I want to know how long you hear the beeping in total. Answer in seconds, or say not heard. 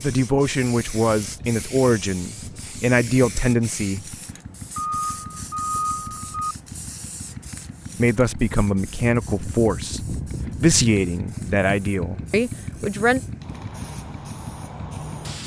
2 s.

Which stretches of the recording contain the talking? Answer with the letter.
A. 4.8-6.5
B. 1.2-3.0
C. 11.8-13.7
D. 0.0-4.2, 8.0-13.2
D.